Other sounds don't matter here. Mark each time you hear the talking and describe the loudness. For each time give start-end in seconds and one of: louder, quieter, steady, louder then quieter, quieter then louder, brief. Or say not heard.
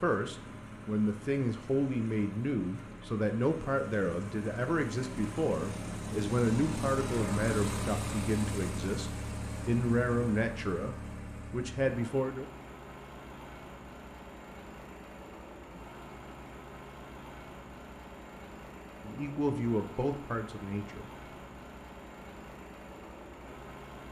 0.0-12.5 steady
19.0-21.1 brief.